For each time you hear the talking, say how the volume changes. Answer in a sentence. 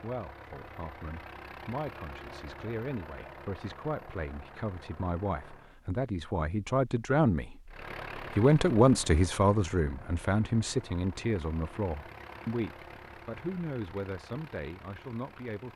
You can hear the talking from 0.0 to 15.7 s, getting louder then quieter.